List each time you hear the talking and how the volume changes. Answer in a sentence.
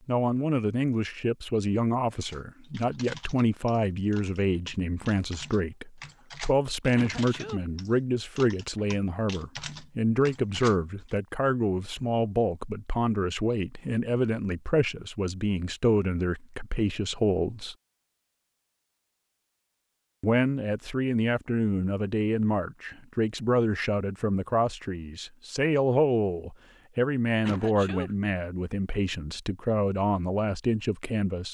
The talking can be heard from 0.1 to 17.8 s, at a steady volume; and from 20.2 to 31.4 s, at a steady volume.